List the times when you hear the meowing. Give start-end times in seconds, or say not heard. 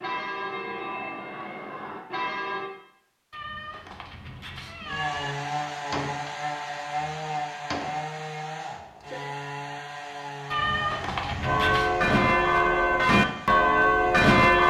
3.3-5.3, 10.5-11.9.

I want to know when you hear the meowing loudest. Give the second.
11 s.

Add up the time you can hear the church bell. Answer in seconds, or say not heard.
6 s.